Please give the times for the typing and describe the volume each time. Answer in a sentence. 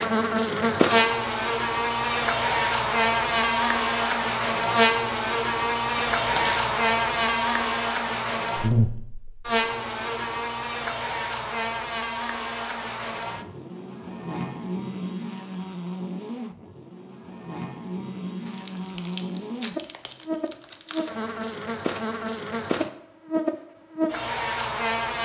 The typing can't be heard in this clip.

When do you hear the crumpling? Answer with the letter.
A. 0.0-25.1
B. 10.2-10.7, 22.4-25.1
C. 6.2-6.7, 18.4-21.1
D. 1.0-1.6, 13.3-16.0
C.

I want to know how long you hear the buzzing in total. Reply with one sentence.
You can hear the buzzing for 25 seconds altogether.